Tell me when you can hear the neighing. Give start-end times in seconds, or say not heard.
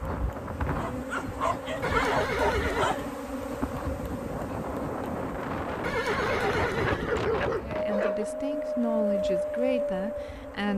1.8-3.0, 5.8-7.2.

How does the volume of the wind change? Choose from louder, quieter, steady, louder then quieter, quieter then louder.
louder.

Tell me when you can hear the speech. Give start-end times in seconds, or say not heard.
7.6-10.7.